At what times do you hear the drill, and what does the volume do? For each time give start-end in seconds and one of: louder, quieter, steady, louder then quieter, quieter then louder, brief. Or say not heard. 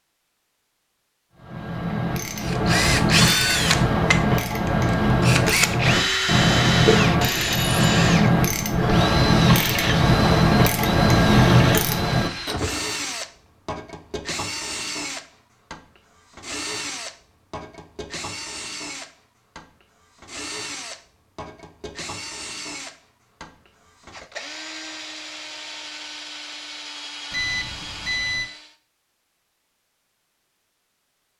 2.4-28.8 quieter.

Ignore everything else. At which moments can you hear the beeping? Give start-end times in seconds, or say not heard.
27.3-28.5.